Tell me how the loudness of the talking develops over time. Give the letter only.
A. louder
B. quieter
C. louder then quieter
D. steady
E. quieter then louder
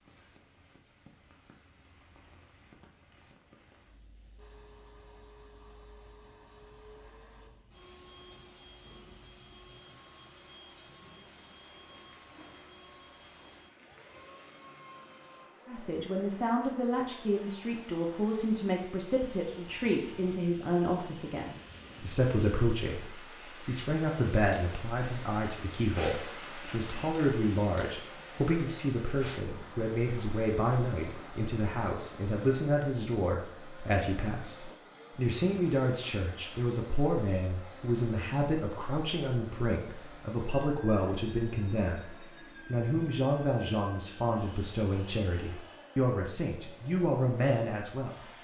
D.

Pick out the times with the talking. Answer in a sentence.
You can hear the talking from 15.7 to 48.1 s.